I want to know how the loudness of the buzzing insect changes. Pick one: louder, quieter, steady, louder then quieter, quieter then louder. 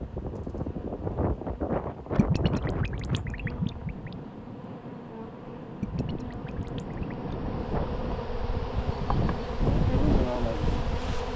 louder.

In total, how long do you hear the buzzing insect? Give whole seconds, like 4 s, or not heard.
11 s.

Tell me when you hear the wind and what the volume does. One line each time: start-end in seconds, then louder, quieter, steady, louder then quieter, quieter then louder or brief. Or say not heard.
0.0-11.3 quieter then louder.